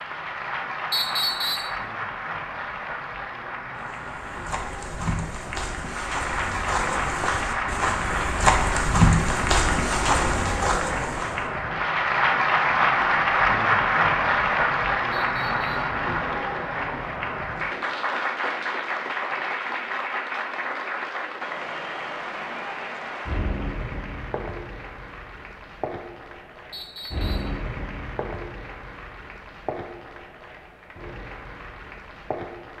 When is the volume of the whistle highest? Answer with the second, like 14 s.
1 s.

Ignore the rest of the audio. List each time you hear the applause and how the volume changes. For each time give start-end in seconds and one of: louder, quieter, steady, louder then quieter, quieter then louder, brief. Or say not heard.
0.0-32.7 louder then quieter.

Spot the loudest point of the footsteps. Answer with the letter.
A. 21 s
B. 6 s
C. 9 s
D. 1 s
C.